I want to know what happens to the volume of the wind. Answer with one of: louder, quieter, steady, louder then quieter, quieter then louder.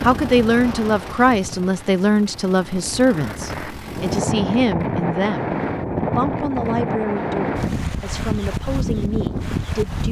louder.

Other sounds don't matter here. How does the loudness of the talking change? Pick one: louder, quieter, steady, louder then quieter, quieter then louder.
quieter.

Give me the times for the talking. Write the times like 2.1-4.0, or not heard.
0.0-10.0.